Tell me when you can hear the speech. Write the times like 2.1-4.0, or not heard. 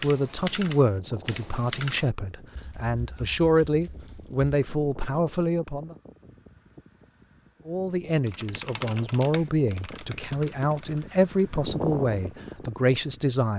0.0-6.0, 7.7-13.5.